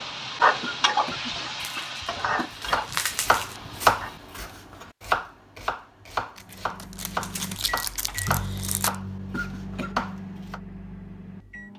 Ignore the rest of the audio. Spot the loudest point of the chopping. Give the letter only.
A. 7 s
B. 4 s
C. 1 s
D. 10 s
B.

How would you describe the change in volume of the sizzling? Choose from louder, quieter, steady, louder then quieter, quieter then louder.
quieter.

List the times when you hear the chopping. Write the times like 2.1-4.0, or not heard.
2.5-10.6.